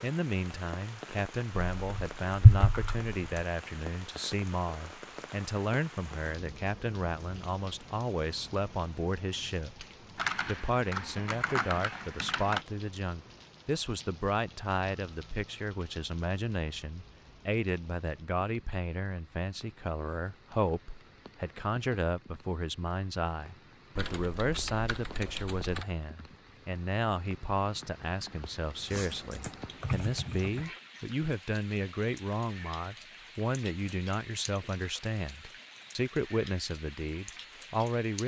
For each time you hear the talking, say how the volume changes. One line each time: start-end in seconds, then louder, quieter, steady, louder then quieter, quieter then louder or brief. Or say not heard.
0.0-9.8 steady
10.4-38.2 steady.